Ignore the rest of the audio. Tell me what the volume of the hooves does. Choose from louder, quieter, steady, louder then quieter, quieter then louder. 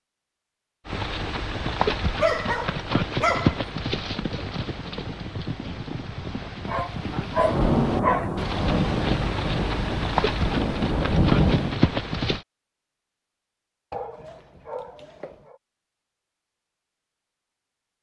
quieter then louder.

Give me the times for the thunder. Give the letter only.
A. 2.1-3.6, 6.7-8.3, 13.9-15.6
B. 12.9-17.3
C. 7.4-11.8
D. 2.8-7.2
C.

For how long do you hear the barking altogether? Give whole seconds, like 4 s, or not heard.
5 s.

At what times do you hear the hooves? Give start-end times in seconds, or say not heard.
0.8-12.4.